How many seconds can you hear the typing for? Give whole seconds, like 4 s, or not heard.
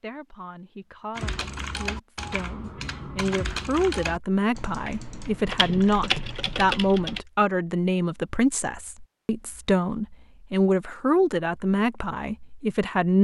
6 s.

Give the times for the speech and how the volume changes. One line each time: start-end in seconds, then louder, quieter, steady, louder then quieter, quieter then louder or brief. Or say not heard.
0.0-13.2 louder.